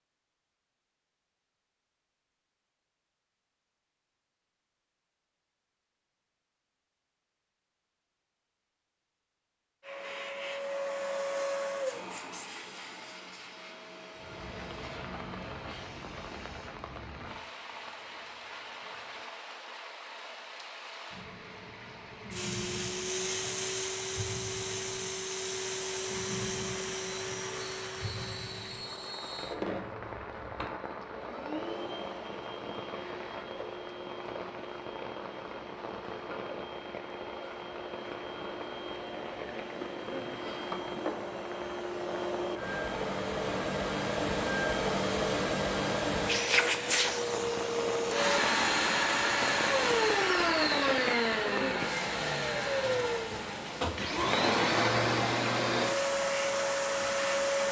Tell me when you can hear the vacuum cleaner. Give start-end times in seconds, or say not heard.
9.8-16.8, 22.3-57.6.